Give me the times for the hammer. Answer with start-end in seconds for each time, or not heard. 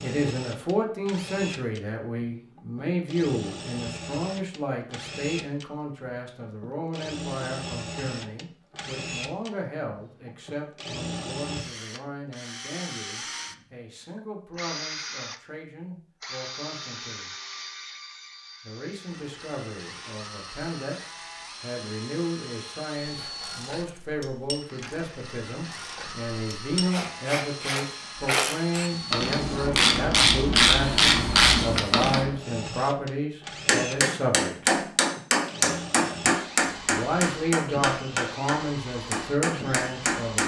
33.6-40.4.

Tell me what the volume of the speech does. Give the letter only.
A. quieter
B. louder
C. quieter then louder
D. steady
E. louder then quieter
C.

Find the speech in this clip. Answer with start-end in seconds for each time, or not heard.
0.0-17.3, 18.6-34.9, 36.9-40.4.